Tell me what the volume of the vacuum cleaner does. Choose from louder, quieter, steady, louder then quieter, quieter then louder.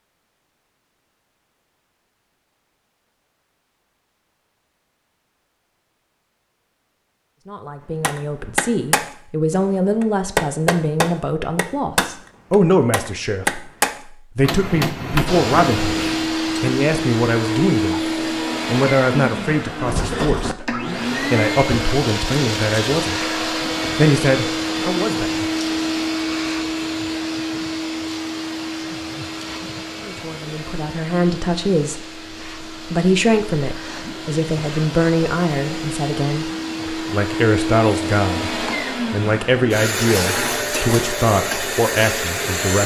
quieter then louder.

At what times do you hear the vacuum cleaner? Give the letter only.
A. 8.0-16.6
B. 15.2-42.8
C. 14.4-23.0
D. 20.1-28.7
B.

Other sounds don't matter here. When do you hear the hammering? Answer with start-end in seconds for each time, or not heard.
8.0-16.6.